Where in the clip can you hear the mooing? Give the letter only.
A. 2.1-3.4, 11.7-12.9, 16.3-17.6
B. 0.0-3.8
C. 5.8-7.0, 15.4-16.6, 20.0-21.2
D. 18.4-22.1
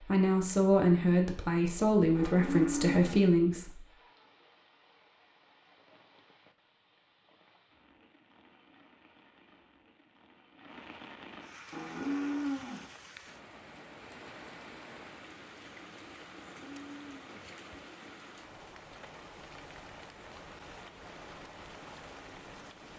A.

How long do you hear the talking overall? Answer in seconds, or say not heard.
4 s.